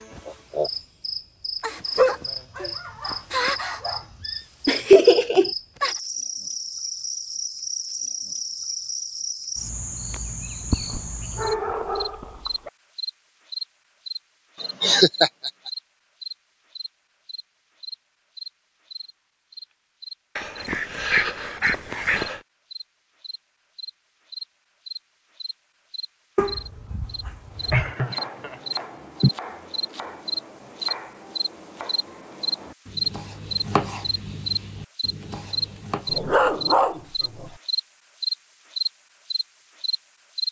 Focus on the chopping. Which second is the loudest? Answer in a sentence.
The volume of the chopping peaks at 34 seconds.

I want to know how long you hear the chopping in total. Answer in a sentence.
The chopping can be heard for 9 seconds in total.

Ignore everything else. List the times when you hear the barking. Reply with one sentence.
The barking can be heard from 1.9 to 4.4 s, from 10.7 to 12.7 s, from 20.4 to 22.4 s, from 26.4 to 27.9 s and from 36.0 to 37.5 s.